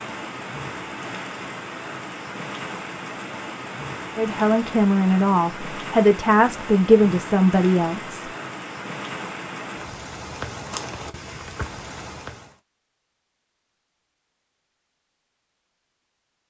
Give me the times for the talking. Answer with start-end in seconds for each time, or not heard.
4.2-8.3.